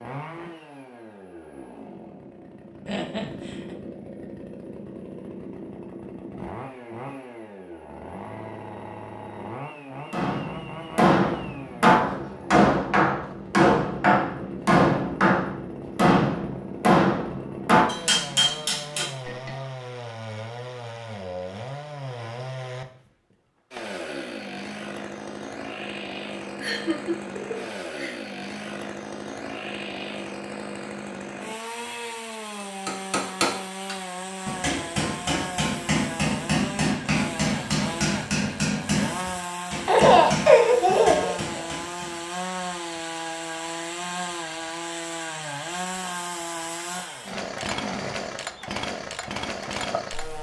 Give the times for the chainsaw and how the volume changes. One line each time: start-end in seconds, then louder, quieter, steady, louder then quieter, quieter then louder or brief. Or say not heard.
0.0-50.3 louder.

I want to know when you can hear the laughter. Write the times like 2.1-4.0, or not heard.
2.9-3.8, 26.6-28.1, 39.9-41.4.